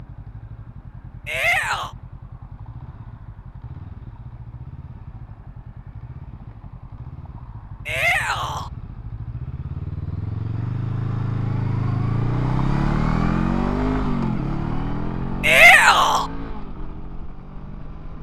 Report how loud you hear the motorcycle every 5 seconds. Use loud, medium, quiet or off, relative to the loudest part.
quiet, quiet, loud, medium.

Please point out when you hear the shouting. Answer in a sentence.
The shouting can be heard from 1.2 to 1.9 s, from 7.8 to 8.7 s and from 15.4 to 16.2 s.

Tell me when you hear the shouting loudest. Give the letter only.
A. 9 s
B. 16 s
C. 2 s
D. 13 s
B.